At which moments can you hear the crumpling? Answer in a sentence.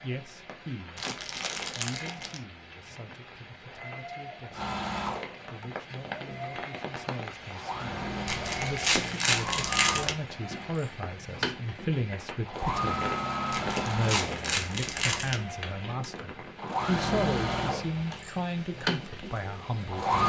The crumpling can be heard from 0.9 to 2.4 s, from 8.2 to 10.2 s and from 13.5 to 15.4 s.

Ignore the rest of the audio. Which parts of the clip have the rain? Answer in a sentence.
The rain can be heard from 0.0 to 20.1 s.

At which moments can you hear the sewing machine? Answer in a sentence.
The sewing machine can be heard from 4.5 to 20.2 s.